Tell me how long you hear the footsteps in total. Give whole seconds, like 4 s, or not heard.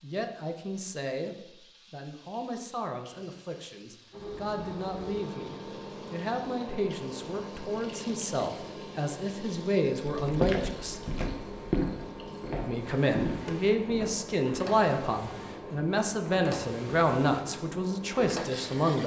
4 s.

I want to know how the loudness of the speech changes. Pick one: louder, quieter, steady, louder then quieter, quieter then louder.
louder.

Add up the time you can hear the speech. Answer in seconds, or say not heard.
17 s.